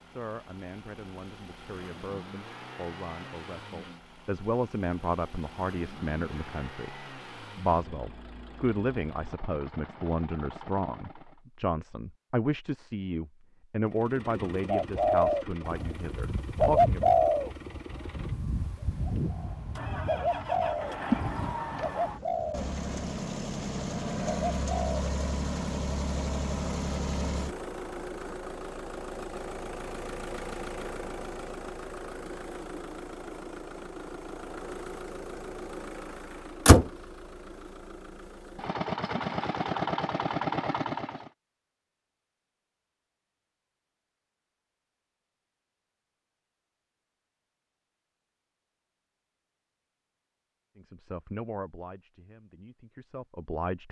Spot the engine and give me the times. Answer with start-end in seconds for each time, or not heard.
0.0-11.4, 13.8-41.3.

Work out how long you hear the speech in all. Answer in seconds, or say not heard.
20 s.